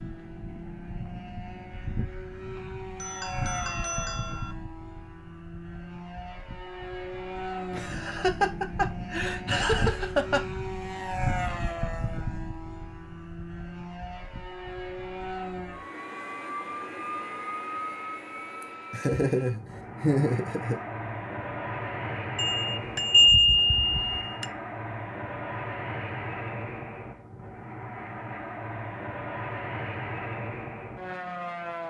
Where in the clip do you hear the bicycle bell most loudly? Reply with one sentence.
The volume of the bicycle bell peaks at 23 seconds.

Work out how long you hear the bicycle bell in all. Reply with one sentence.
You can hear the bicycle bell for 4 seconds altogether.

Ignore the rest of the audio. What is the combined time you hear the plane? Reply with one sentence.
The plane can be heard for 32 seconds in total.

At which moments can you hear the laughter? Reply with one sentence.
The laughter can be heard from 7.7 to 10.4 s and from 18.6 to 20.8 s.